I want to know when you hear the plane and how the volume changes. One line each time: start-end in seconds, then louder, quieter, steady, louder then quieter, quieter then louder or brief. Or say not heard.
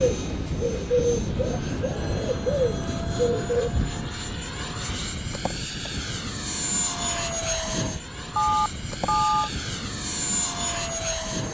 0.0-11.4 steady.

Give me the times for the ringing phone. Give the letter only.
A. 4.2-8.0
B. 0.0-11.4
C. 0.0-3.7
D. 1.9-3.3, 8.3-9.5
D.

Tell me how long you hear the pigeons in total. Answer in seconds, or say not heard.
4 s.